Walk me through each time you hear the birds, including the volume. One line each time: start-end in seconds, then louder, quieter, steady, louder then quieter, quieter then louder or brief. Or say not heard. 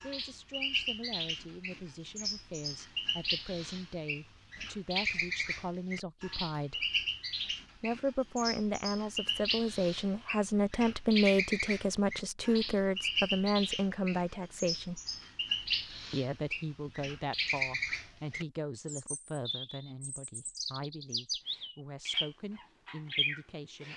0.0-23.9 steady.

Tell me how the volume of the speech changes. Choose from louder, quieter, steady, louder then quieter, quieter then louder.
louder then quieter.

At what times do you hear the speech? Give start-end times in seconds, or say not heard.
0.0-6.9, 7.8-15.0, 16.1-23.9.